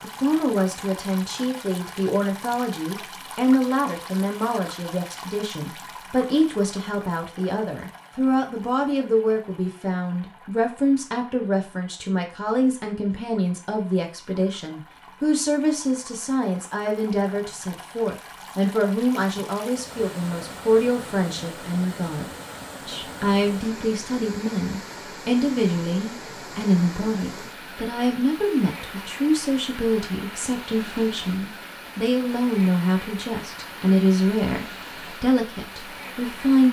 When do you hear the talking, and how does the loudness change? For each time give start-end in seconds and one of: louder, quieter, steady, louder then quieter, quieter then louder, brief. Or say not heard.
0.0-36.6 steady.